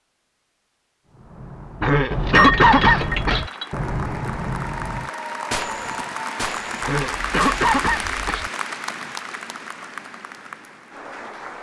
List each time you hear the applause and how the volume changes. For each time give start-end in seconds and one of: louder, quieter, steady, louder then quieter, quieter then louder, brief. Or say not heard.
3.0-11.5 louder then quieter.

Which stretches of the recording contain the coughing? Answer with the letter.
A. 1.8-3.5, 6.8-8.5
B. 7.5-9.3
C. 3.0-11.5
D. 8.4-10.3
A.